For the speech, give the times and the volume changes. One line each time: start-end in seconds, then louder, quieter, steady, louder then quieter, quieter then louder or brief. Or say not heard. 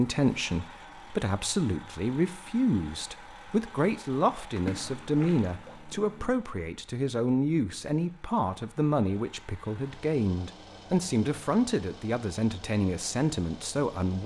0.0-14.2 steady.